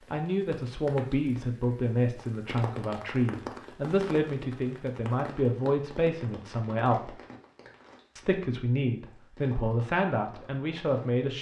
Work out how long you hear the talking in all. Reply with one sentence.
You can hear the talking for 10 seconds altogether.